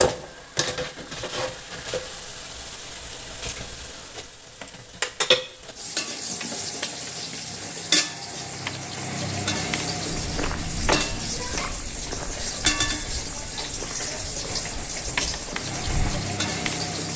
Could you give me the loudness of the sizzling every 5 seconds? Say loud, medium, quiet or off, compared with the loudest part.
medium, loud, loud, loud.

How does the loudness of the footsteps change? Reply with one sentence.
The volume of the footsteps goes down.